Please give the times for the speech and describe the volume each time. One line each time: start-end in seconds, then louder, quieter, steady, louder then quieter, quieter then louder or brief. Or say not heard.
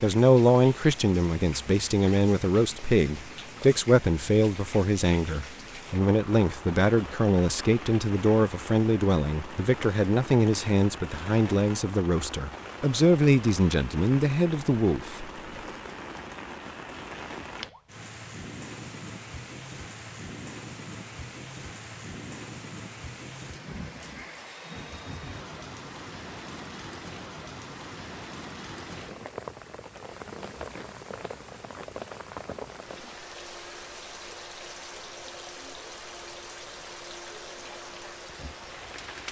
0.0-15.3 steady.